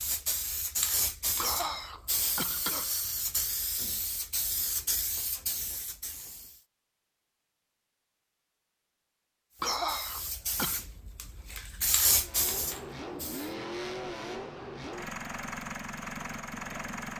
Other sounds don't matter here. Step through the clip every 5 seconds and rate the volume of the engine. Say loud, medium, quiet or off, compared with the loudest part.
off, off, loud, loud.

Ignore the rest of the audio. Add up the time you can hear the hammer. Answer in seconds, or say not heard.
not heard.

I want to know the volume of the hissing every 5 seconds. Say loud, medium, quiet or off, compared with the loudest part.
loud, medium, loud, off.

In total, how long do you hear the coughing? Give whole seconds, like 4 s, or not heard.
3 s.